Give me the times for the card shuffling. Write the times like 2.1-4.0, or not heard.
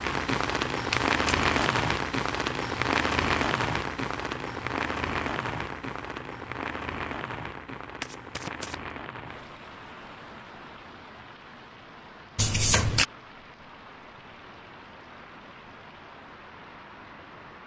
0.9-1.7, 8.0-8.8, 12.3-13.1.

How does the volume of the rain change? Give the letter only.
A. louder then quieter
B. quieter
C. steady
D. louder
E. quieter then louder
B.